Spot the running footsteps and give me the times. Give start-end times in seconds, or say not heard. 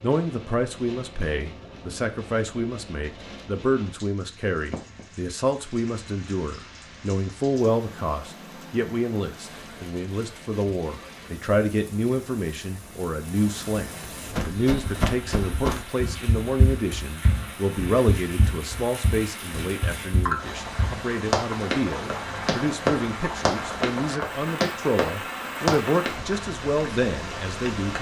14.3-26.1.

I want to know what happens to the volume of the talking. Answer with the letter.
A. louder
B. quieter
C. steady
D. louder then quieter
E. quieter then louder
C.